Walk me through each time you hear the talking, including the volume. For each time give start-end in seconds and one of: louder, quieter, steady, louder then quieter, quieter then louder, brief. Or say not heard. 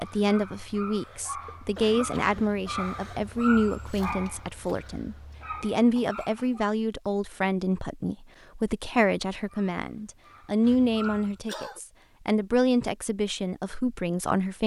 0.0-14.6 steady.